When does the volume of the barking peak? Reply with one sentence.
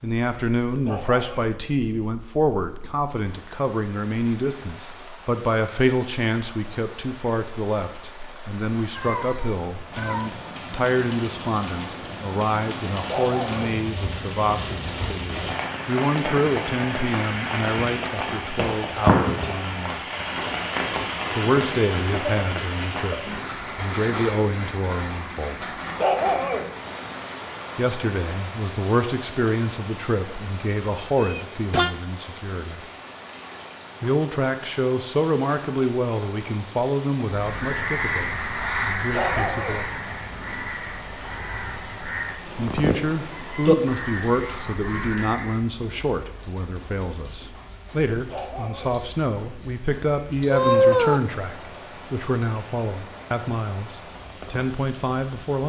The loudest moment of the barking is at 26 seconds.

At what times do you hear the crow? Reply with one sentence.
The crow can be heard from 37.2 to 45.6 s.